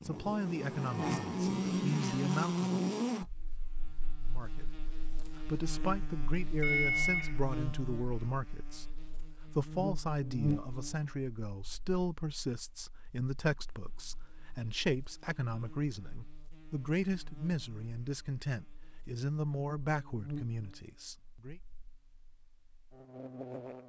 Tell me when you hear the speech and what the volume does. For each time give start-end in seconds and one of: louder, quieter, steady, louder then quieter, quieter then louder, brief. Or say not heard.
0.0-2.9 brief
4.2-21.6 steady.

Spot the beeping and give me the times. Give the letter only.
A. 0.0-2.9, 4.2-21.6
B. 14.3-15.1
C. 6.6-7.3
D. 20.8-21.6
C.